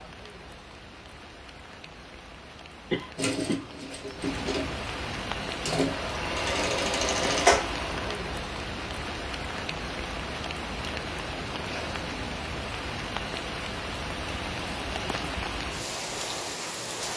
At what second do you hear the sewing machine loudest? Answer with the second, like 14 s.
7 s.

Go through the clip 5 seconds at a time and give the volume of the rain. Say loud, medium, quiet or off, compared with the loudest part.
medium, loud, loud, loud.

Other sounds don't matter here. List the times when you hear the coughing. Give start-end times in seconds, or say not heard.
2.9-3.9.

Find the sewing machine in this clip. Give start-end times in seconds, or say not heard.
3.1-8.2.